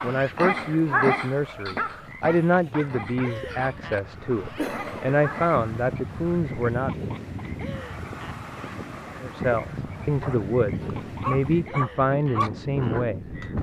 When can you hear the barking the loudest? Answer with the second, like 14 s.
1 s.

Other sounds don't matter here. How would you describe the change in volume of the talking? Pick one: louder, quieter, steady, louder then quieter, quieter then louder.
steady.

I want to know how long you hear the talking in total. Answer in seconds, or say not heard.
11 s.